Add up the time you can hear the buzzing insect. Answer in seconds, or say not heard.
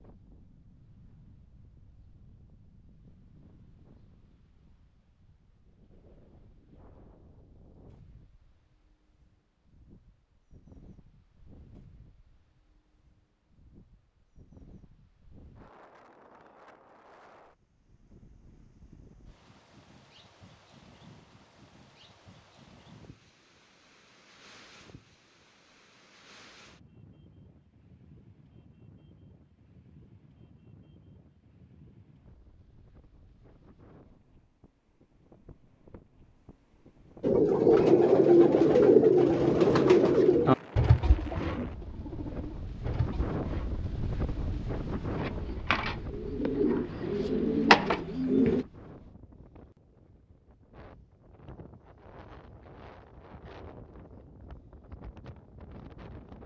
not heard.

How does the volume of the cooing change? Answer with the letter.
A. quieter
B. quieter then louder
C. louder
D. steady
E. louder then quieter
B.